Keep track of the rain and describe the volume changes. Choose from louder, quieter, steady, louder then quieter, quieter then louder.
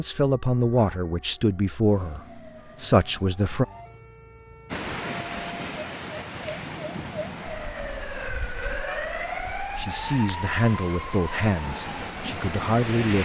quieter then louder.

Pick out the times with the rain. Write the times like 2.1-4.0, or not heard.
4.7-13.2.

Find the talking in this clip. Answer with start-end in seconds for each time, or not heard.
0.0-3.6, 9.8-13.2.